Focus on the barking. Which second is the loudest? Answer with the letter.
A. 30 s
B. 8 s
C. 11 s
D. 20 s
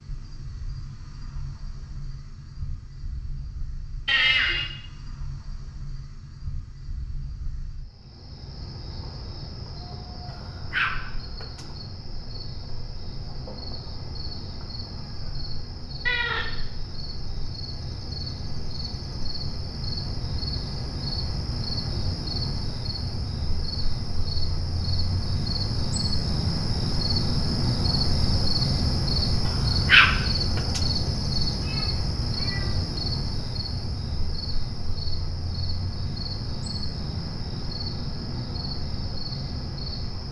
A.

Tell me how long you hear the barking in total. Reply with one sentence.
The barking can be heard for 3 seconds in total.